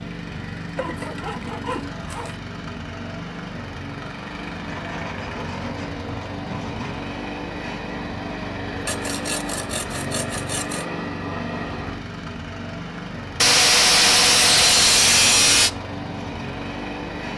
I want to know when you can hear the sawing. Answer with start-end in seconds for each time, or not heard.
0.8-2.4, 4.7-7.0, 8.8-10.8, 13.4-15.7.